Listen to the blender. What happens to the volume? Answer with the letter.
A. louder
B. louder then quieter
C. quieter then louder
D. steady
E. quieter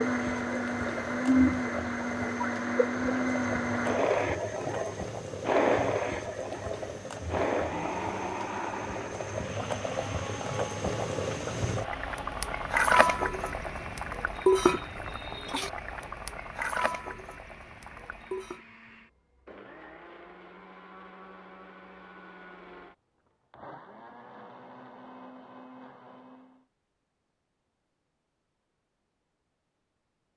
E.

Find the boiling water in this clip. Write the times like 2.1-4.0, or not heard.
0.0-18.6.